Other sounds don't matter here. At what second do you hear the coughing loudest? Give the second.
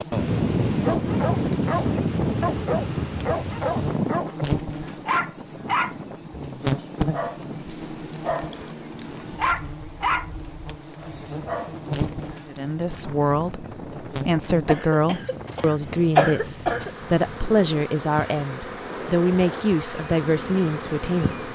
16 s.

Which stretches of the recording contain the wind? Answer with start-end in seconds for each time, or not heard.
0.0-21.5.